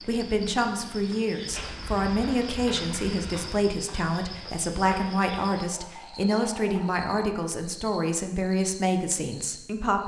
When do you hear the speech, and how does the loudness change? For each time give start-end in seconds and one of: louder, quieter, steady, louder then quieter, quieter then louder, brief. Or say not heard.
0.0-10.0 steady.